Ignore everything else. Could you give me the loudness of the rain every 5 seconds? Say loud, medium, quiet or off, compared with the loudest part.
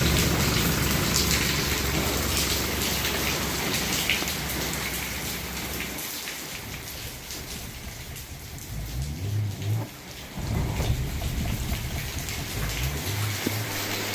loud, medium, medium.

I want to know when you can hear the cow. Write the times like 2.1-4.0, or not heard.
not heard.